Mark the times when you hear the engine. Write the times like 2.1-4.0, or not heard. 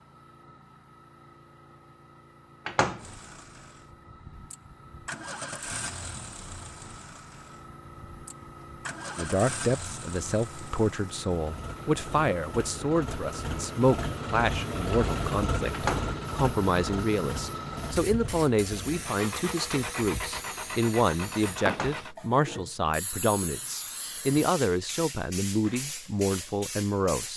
3.0-22.1.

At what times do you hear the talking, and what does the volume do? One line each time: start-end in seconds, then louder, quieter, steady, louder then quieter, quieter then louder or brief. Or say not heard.
9.2-27.3 steady.